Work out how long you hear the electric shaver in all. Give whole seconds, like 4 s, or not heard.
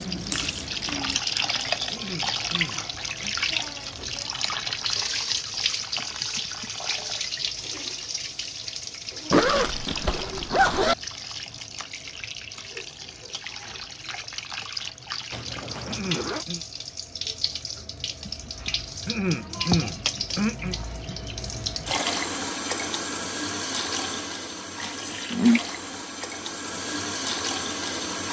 not heard.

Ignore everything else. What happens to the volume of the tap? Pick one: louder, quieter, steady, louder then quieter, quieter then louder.
quieter then louder.